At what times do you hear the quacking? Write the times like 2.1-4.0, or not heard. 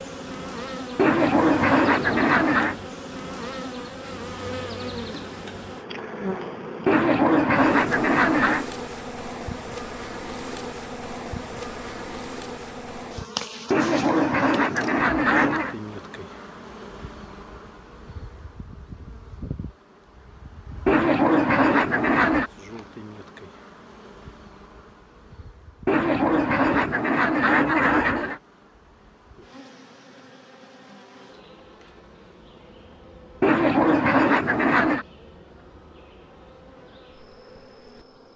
0.9-2.8, 6.8-8.7, 13.7-15.8, 20.9-22.5, 25.9-28.4, 33.4-35.0.